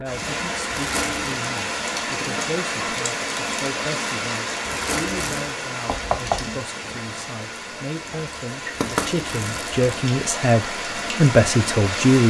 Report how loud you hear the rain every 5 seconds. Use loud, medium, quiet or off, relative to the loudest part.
loud, medium, loud.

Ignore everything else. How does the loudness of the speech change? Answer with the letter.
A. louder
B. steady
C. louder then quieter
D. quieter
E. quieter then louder
A.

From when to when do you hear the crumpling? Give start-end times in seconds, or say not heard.
0.7-1.4, 4.7-5.5, 8.8-9.9.